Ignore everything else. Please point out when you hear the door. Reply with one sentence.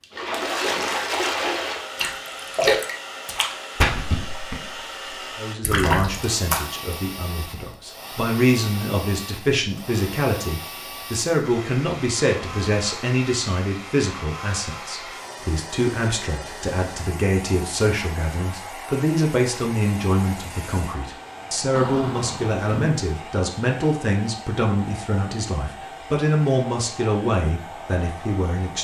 The door can be heard from 21.8 to 23.0 s.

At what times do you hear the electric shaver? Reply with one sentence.
You can't hear the electric shaver here.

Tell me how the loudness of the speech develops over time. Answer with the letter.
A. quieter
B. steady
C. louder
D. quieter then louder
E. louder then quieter
B.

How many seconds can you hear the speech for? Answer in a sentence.
You can hear the speech for 23 seconds altogether.